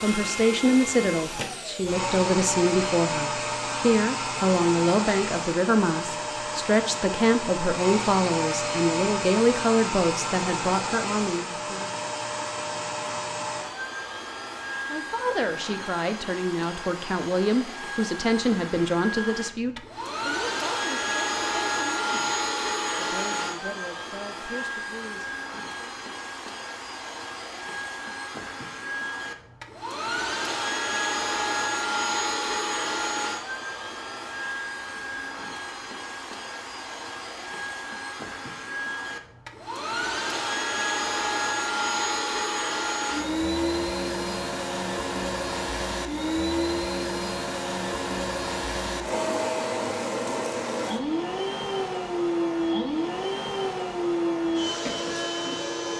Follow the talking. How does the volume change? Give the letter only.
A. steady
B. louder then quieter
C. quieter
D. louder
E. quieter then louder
C.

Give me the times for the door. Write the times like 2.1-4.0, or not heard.
not heard.